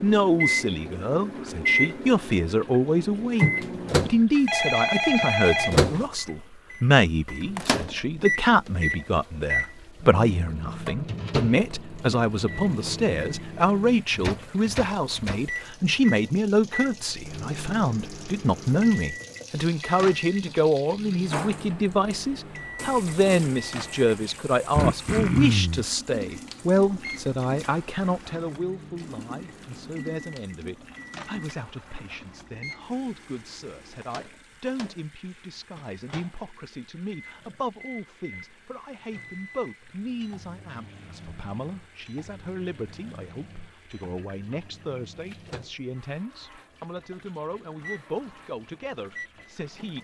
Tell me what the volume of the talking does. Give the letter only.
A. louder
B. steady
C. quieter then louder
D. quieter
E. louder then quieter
D.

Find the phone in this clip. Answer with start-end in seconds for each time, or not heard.
4.3-6.1.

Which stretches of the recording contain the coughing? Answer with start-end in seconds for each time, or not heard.
24.8-25.9.